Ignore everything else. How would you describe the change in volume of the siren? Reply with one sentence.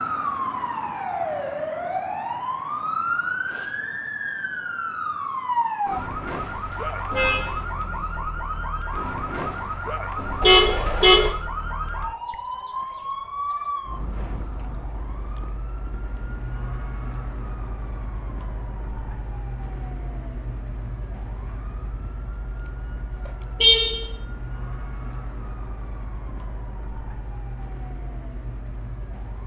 The loudness of the siren goes down.